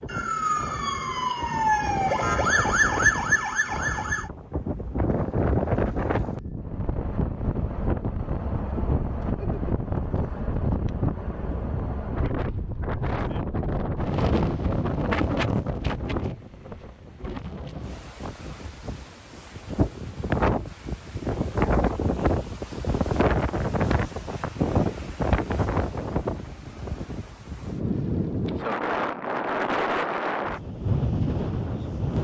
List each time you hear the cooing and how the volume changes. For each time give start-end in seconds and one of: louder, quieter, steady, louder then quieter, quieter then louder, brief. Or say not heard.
not heard.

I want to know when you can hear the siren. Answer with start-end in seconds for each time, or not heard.
0.0-4.3.